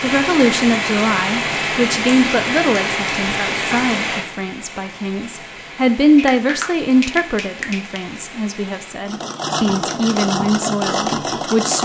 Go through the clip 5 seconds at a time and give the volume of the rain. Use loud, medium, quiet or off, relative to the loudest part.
loud, quiet, off.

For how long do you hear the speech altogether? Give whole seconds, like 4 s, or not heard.
12 s.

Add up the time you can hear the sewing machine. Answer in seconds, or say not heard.
3 s.